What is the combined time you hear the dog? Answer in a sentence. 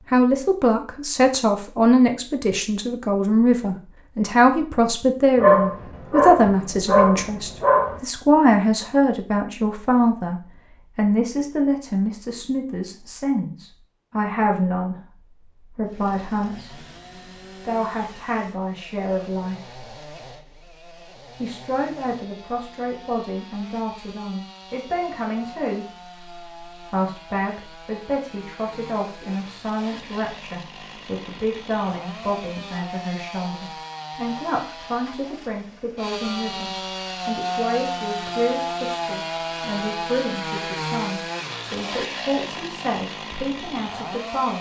You can hear the dog for 3 seconds altogether.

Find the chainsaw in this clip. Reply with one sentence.
The chainsaw can be heard from 15.8 to 44.5 s.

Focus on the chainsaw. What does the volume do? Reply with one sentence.
The volume of the chainsaw goes up.